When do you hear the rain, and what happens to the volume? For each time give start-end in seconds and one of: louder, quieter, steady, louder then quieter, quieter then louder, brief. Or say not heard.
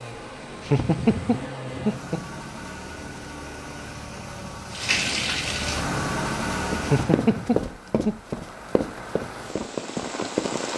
4.7-10.7 quieter then louder.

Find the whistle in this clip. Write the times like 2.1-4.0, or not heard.
not heard.